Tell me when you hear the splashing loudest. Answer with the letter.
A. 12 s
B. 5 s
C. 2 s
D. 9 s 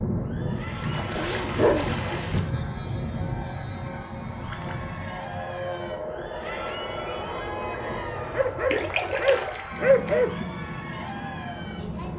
D.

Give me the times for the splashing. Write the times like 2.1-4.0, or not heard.
0.7-2.5, 4.4-5.0, 8.7-10.3.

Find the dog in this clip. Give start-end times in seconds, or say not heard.
1.1-1.9, 7.9-10.4.